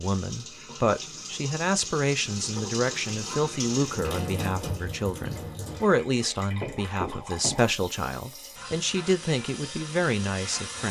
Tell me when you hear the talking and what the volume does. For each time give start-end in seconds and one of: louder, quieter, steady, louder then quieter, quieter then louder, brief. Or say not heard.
0.0-10.8 steady.